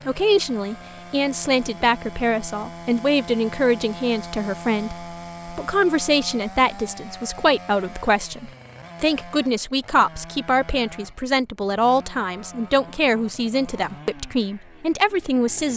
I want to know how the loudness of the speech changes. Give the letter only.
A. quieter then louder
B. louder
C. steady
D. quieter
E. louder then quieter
C.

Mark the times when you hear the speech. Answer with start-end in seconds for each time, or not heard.
0.1-15.7.